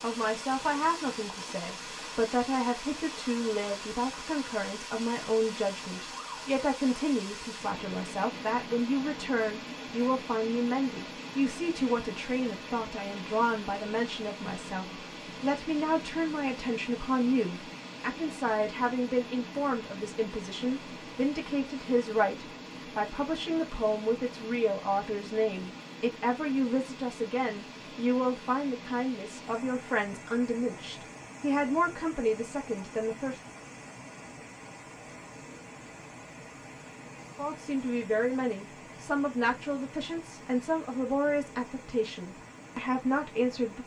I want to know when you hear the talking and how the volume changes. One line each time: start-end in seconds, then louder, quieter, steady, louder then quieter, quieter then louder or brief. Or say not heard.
0.0-33.4 steady
37.4-43.8 steady.